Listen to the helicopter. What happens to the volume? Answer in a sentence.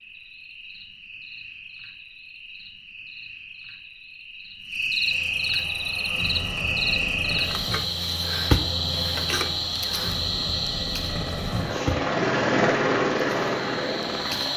The loudness of the helicopter goes up.